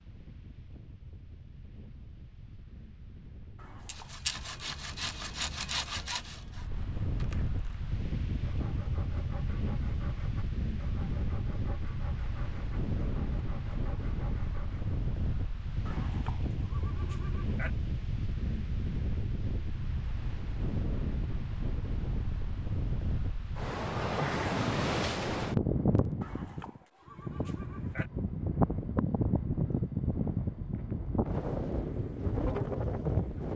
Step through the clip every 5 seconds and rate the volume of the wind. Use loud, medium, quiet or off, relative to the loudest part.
quiet, medium, medium, medium, loud, loud, loud.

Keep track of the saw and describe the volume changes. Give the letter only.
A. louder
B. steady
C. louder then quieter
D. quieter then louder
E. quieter
E.